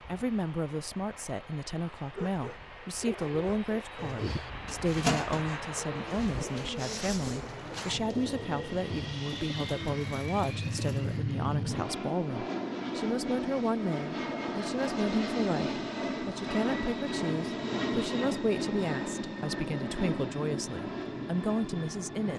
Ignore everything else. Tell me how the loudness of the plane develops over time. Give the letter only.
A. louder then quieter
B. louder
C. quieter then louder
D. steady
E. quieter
B.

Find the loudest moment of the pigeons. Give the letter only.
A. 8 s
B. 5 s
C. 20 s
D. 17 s
B.